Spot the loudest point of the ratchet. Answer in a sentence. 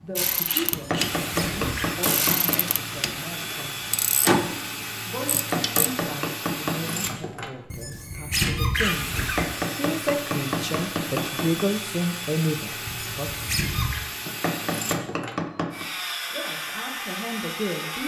The loudest moment of the ratchet is at 4 seconds.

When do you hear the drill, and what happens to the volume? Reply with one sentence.
You can hear the drill from 0.0 to 18.0 s, at a steady volume.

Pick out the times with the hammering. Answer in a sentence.
You can hear the hammering from 0.7 to 2.8 s, from 5.3 to 7.0 s, from 9.2 to 11.7 s and from 14.2 to 15.8 s.